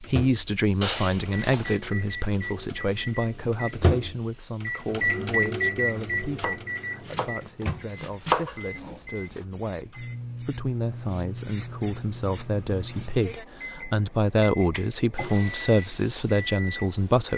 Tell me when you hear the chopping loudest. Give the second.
8 s.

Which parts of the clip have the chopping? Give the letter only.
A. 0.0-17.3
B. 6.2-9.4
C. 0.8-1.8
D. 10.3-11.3
B.